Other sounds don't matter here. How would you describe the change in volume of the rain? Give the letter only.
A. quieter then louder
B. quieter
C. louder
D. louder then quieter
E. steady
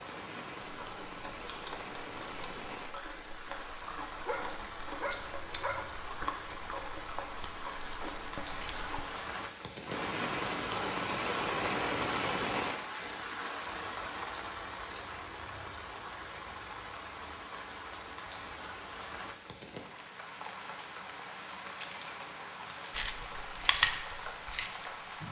D.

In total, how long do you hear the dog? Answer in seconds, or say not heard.
2 s.